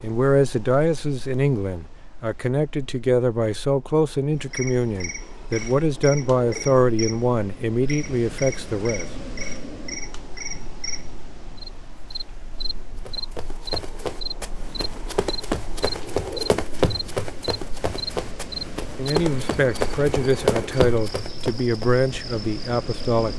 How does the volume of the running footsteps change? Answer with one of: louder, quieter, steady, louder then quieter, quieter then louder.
louder.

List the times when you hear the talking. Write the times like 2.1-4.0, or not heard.
0.0-9.1, 18.9-23.3.